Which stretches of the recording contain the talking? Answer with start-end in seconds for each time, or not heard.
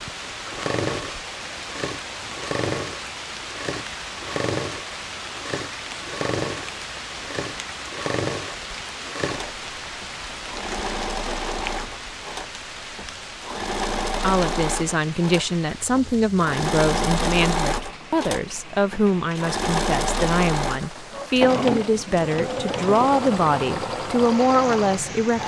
14.2-25.4.